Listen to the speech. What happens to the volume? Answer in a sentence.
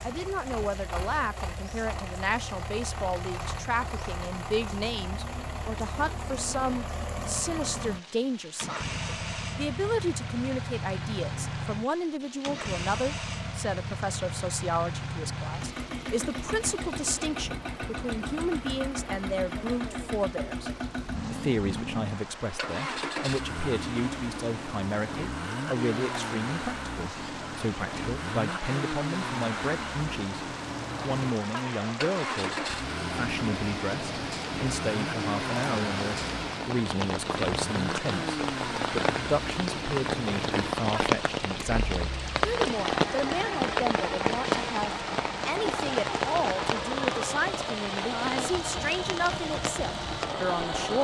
The loudness of the speech stays about the same.